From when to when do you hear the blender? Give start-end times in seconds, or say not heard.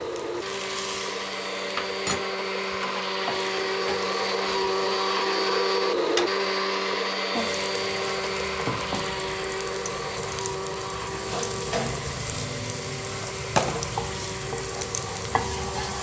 0.0-15.9.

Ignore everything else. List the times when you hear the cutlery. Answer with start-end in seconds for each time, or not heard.
not heard.